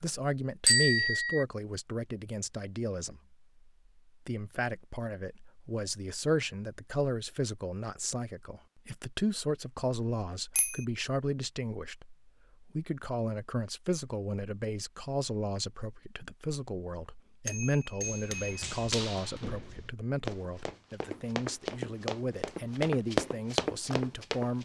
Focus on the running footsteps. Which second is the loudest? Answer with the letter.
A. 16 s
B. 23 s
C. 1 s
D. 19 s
B.